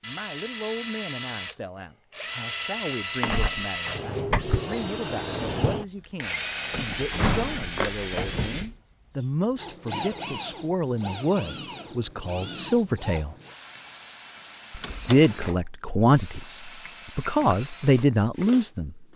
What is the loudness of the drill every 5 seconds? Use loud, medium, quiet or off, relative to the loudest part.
loud, loud, medium, medium.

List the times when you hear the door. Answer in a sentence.
The door can be heard from 3.2 to 4.6 s, from 6.7 to 8.8 s and from 14.7 to 15.3 s.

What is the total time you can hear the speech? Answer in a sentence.
You can hear the speech for 17 seconds altogether.